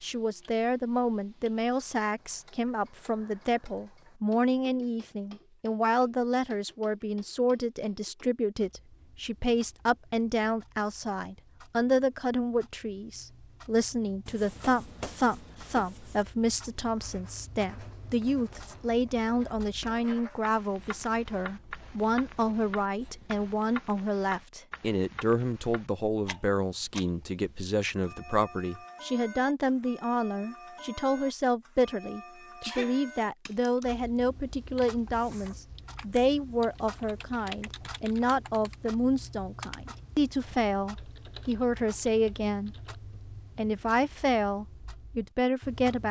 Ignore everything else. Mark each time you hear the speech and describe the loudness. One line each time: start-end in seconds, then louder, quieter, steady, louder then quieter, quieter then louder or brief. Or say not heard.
0.0-42.8 steady
43.5-46.0 brief.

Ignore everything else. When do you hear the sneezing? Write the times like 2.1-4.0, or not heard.
32.6-33.0.